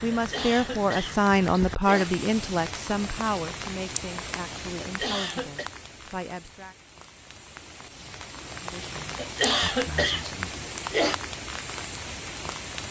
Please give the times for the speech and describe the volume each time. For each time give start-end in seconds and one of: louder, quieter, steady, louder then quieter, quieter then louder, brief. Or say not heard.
0.0-6.8 quieter
8.6-10.7 brief.